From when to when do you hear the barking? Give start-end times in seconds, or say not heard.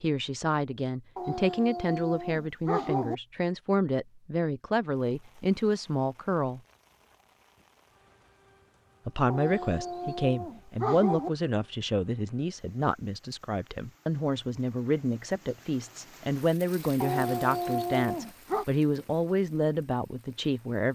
1.1-3.1, 9.3-11.3, 17.0-18.6.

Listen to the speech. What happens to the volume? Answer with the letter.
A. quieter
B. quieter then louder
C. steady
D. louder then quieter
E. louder
C.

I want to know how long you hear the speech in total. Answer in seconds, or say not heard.
18 s.